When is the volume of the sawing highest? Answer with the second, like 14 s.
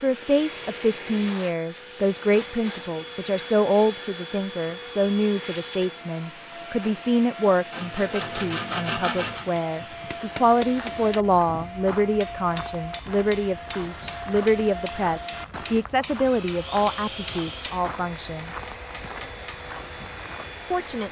9 s.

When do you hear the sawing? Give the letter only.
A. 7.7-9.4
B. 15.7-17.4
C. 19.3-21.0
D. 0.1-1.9
A.